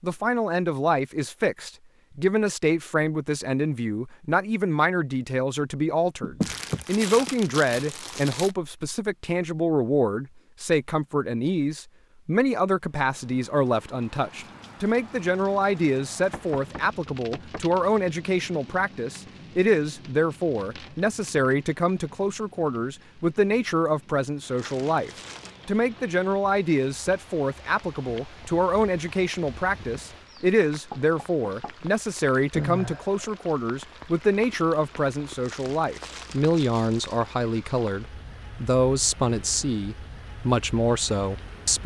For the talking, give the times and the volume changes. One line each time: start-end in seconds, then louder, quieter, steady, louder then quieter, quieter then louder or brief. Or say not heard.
0.0-41.8 steady.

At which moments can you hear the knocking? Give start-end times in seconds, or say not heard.
6.2-6.8, 16.3-17.8, 30.9-32.4.